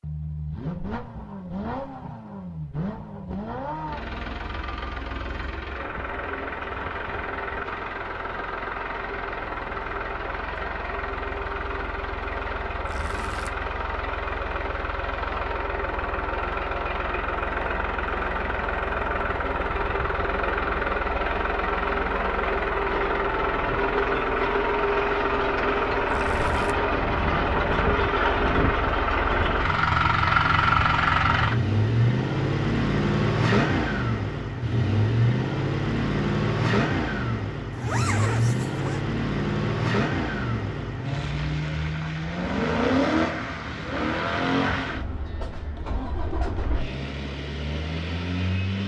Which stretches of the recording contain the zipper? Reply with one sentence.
The zipper can be heard from 12.8 to 13.5 s, from 26.1 to 26.8 s and from 37.7 to 39.0 s.